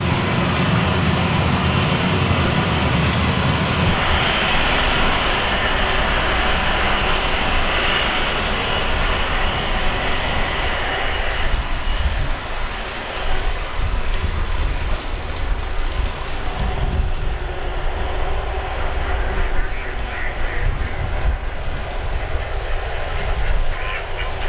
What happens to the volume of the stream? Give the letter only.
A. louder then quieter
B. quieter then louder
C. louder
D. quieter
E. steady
D.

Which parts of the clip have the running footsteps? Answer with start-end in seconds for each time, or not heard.
not heard.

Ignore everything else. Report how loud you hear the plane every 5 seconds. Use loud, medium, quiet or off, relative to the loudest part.
loud, loud, medium, medium, medium.